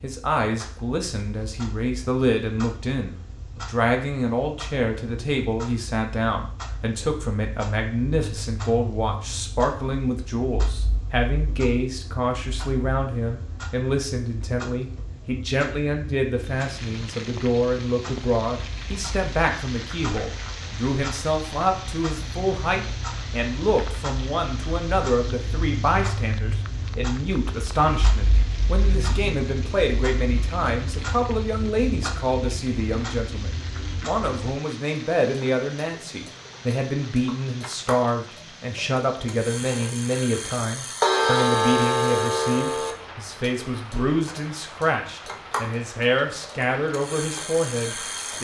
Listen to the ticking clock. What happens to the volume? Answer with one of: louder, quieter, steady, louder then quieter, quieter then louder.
louder.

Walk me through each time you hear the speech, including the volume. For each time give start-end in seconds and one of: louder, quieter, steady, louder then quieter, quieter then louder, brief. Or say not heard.
0.0-48.3 steady.